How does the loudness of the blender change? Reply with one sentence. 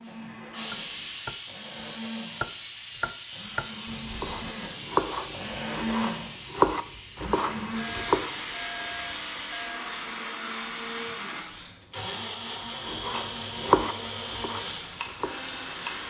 The loudness of the blender goes up.